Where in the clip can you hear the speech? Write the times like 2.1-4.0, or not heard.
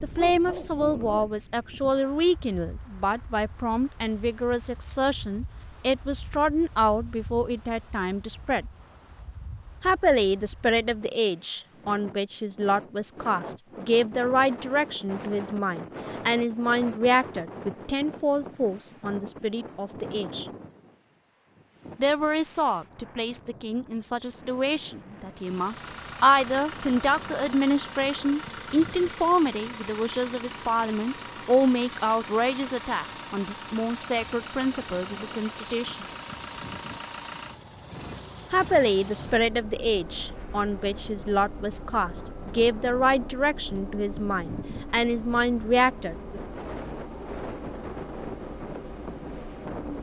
0.0-8.7, 9.8-20.4, 22.0-36.0, 38.5-46.4.